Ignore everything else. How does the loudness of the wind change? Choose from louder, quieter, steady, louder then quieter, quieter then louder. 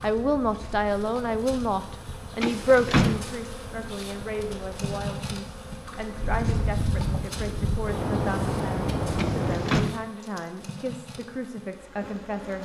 louder.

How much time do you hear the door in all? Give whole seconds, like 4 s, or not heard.
2 s.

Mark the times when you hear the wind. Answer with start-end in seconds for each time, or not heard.
0.0-9.8.